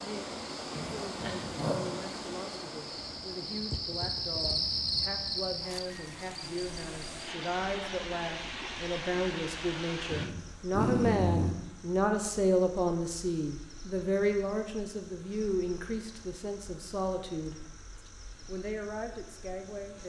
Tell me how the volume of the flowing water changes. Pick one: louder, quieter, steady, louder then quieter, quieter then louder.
quieter then louder.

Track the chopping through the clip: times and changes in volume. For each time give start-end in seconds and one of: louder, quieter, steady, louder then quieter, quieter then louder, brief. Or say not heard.
not heard.